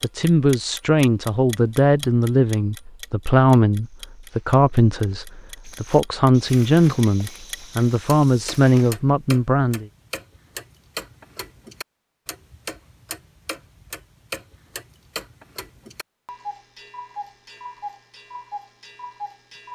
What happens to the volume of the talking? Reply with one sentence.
The volume of the talking stays about the same.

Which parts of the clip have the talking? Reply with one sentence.
The talking can be heard from 0.0 to 9.8 s.